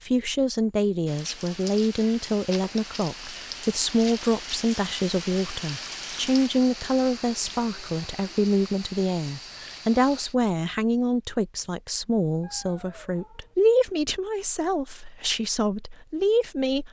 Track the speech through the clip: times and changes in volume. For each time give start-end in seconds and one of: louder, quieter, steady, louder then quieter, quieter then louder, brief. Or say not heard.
0.0-16.8 steady.